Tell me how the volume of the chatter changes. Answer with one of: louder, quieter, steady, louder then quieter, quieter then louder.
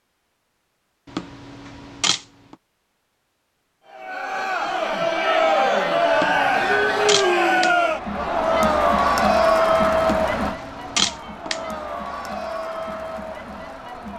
quieter.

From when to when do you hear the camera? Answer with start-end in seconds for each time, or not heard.
1.1-2.2, 6.2-7.8, 10.2-11.6.